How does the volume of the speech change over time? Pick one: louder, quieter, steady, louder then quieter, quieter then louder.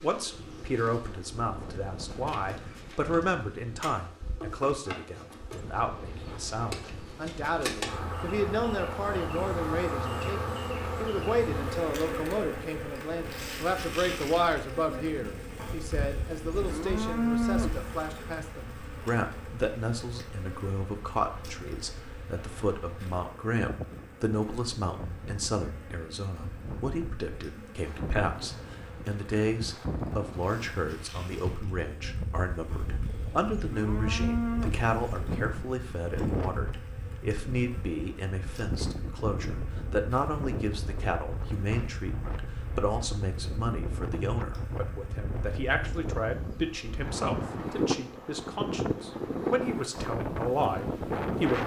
steady.